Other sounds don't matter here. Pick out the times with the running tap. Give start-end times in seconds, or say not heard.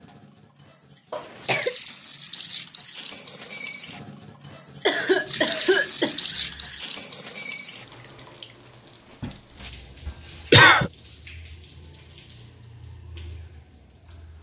0.0-14.3.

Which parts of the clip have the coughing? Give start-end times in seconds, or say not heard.
1.1-1.8, 4.8-6.8, 10.1-10.9.